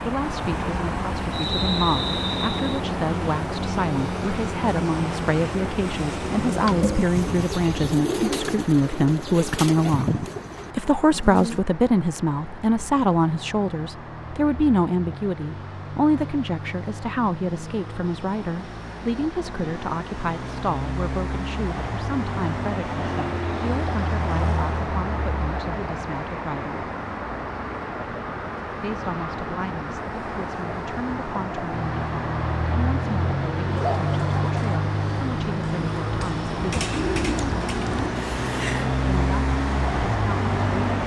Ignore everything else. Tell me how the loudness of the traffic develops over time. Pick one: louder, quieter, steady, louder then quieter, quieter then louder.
quieter then louder.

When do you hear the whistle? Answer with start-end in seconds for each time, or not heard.
1.3-2.8.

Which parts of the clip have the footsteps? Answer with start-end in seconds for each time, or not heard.
not heard.